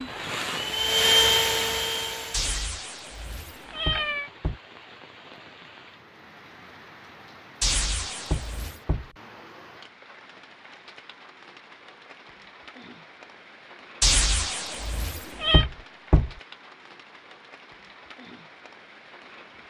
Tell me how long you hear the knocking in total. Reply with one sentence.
You can hear the knocking for 2 seconds altogether.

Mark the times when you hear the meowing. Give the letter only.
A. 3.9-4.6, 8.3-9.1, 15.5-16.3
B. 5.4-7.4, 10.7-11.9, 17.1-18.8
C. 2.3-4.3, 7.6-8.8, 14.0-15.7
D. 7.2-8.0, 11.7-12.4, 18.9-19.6
C.